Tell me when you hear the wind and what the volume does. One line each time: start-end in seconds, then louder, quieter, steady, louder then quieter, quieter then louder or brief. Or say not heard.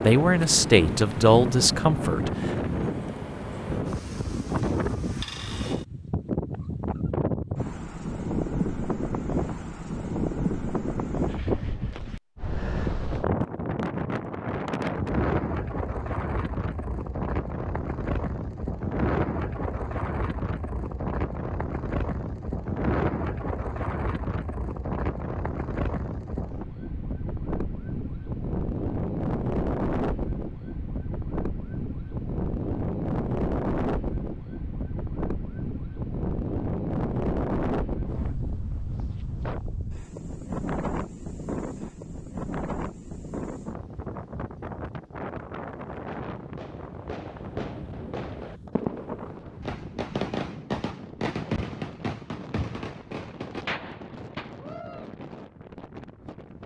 0.0-56.6 quieter.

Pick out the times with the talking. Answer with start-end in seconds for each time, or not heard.
0.0-2.5.